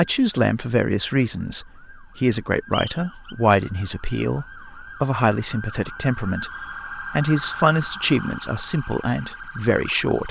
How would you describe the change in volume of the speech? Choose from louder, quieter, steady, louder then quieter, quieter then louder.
steady.